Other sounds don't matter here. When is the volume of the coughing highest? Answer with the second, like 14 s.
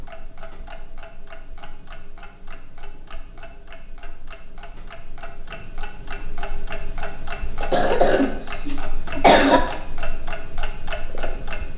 9 s.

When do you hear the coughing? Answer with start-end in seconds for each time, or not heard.
7.6-9.6.